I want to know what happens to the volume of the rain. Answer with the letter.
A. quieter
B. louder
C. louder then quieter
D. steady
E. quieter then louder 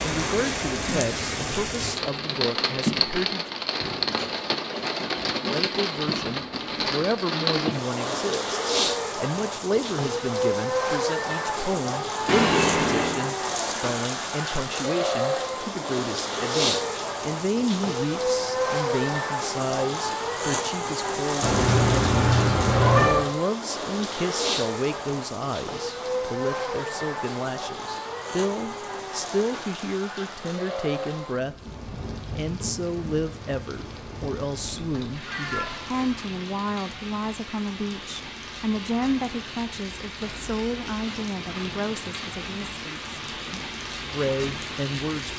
A.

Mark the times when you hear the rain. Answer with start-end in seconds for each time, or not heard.
0.0-45.3.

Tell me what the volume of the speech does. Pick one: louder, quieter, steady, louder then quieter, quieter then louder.
steady.